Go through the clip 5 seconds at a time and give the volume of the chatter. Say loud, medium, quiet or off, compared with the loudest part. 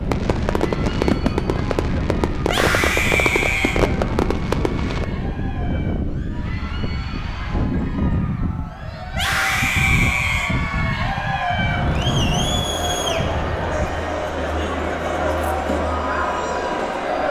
quiet, quiet, loud, loud.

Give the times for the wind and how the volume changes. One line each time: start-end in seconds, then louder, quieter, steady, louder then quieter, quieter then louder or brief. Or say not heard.
0.0-14.1 steady.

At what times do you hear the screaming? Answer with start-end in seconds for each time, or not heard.
2.4-3.8, 9.1-10.6.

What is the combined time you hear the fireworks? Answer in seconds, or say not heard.
5 s.